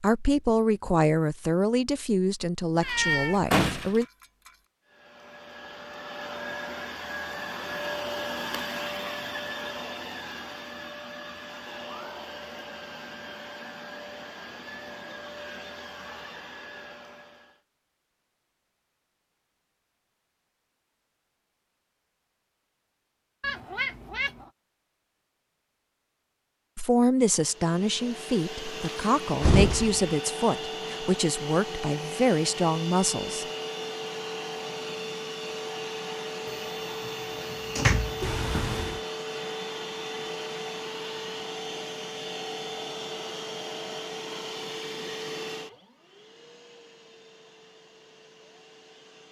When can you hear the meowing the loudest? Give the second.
3 s.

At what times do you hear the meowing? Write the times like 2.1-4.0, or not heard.
2.8-4.5, 23.4-24.5, 38.2-39.0.